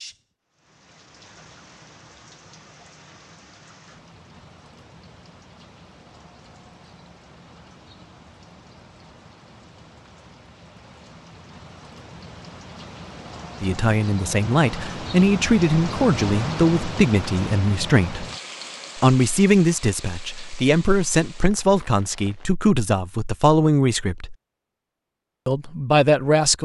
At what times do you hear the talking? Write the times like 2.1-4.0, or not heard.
13.6-18.2, 18.9-24.4, 25.4-26.6.